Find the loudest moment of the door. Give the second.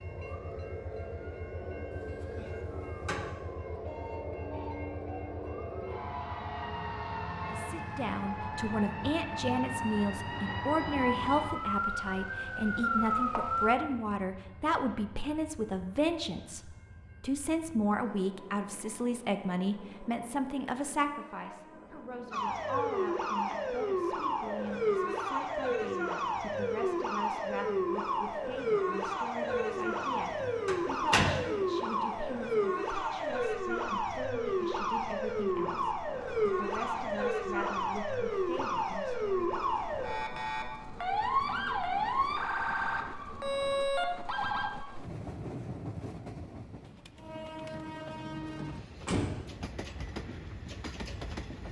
31 s.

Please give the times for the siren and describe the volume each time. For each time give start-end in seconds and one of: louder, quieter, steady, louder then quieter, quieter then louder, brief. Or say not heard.
0.0-13.8 louder
22.3-44.7 steady.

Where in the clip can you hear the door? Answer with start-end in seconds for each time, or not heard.
1.9-3.3, 29.5-30.0, 30.6-31.4, 48.5-49.5.